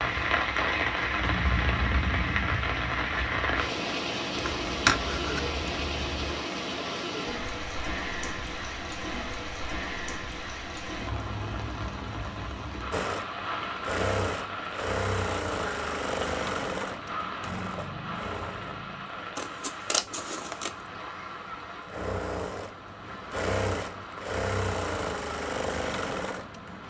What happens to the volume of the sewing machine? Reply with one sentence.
The volume of the sewing machine goes down, then up.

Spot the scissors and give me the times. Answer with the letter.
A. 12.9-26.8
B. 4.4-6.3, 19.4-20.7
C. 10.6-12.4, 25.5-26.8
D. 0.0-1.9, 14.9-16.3
B.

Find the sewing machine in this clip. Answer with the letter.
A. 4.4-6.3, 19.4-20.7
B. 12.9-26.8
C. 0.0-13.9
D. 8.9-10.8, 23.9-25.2
B.